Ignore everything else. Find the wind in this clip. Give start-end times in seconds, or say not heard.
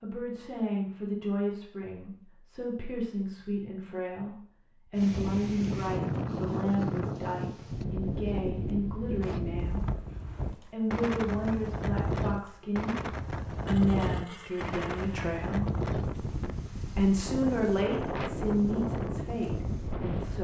5.0-20.4.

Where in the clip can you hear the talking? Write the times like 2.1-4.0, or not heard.
0.0-10.0, 10.7-15.7, 16.8-20.4.